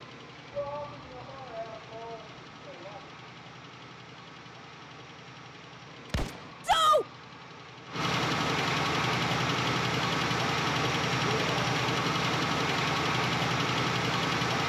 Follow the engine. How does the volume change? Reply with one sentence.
The loudness of the engine goes up.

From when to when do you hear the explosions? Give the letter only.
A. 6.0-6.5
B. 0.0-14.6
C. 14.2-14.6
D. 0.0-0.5
A.